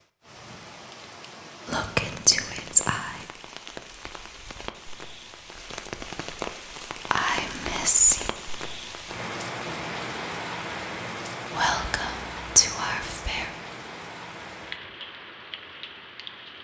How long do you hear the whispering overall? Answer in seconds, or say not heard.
5 s.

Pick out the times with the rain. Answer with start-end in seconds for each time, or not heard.
0.0-16.5.